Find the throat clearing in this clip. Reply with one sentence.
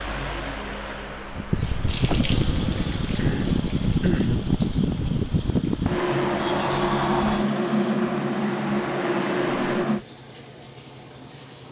You can hear the throat clearing from 3.1 to 4.5 s.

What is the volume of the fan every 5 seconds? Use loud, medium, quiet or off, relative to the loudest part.
loud, loud, off.